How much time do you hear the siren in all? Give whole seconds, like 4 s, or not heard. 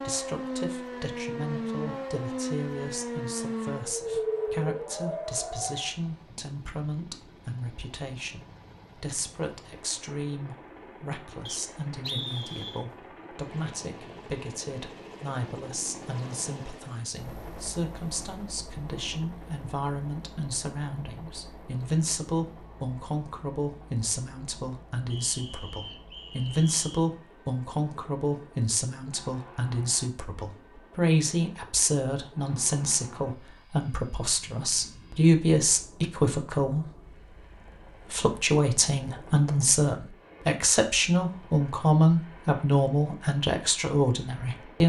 6 s.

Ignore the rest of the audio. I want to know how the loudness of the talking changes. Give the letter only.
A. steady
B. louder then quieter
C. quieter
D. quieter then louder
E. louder
E.